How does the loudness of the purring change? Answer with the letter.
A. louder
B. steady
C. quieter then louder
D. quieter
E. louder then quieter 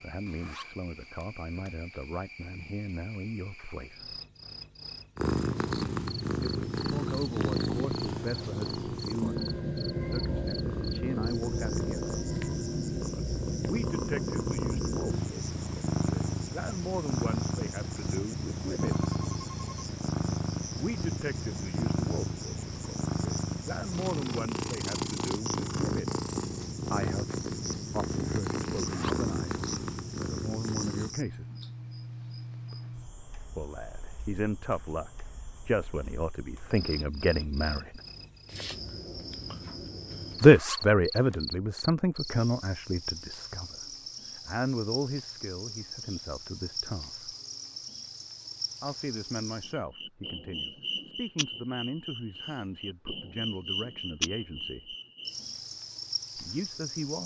B.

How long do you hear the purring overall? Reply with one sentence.
You can hear the purring for 26 seconds altogether.